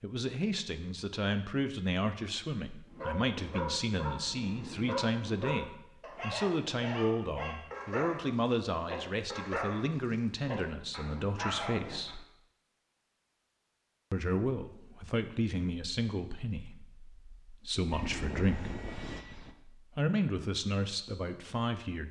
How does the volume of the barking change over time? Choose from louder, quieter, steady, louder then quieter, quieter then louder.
steady.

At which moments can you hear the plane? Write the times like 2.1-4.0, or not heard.
17.9-19.6.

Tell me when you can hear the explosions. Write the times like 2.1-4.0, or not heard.
not heard.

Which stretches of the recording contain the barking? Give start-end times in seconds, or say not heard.
2.9-12.2.